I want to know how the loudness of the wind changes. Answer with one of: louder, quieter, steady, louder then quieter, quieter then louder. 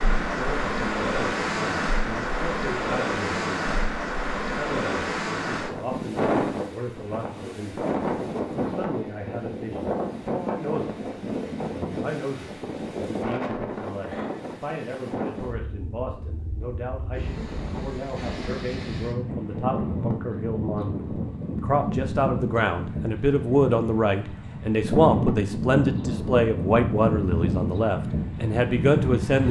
quieter then louder.